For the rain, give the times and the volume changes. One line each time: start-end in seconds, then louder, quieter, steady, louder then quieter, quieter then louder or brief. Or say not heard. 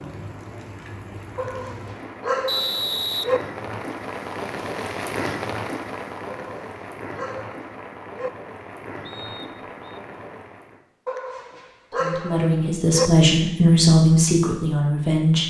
0.0-10.8 louder then quieter.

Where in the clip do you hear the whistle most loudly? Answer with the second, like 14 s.
3 s.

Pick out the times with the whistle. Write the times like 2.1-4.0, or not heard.
2.5-4.0, 9.1-9.8.